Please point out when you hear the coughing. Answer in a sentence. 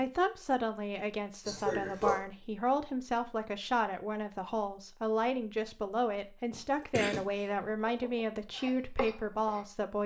You can hear the coughing from 1.4 to 2.2 s and from 6.5 to 7.2 s.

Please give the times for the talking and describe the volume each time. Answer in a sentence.
The talking can be heard from 0.0 to 10.0 s, at a steady volume.